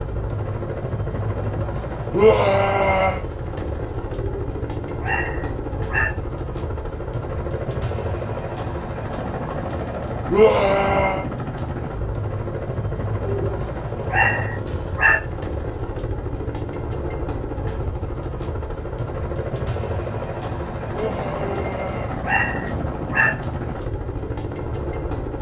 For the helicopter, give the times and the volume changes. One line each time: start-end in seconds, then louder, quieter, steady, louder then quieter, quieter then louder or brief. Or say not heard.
0.0-25.3 steady.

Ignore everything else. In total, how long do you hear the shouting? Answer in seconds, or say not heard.
3 s.